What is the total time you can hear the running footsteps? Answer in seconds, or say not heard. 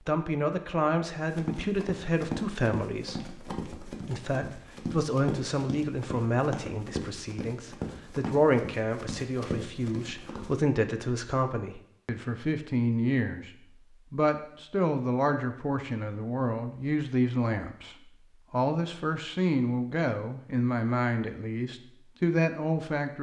9 s.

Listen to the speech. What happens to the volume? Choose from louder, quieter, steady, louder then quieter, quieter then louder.
steady.